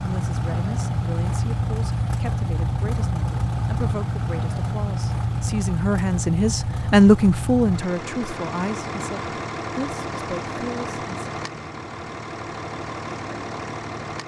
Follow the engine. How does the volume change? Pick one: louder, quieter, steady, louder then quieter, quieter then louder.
quieter.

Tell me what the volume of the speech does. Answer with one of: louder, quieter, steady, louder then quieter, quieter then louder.
louder then quieter.